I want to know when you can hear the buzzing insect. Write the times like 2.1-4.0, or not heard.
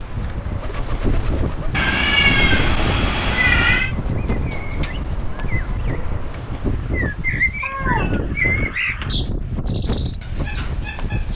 not heard.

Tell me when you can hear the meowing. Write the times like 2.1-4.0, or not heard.
1.7-4.0, 7.6-9.2.